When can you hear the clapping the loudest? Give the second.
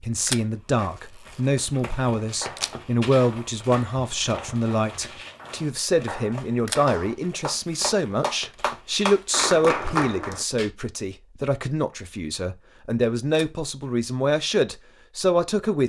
10 s.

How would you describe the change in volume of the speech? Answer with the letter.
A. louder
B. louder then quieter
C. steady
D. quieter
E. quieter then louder
C.